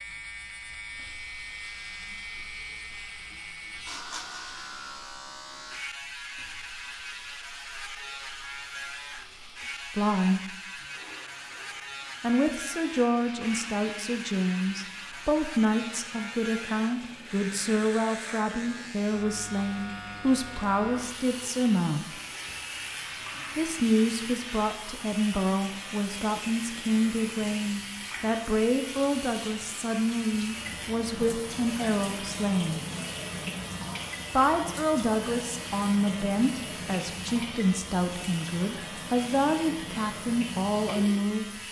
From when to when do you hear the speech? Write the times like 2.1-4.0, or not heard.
9.9-10.4, 12.2-22.2, 23.6-32.9, 34.3-41.6.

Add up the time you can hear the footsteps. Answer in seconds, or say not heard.
not heard.